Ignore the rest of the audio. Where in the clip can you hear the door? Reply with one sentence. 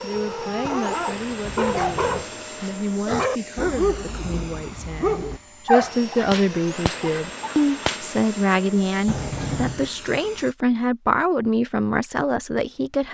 The door can be heard from 0.1 to 2.2 s and from 9.1 to 9.9 s.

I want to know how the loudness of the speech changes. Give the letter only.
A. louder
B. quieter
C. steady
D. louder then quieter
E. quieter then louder
A.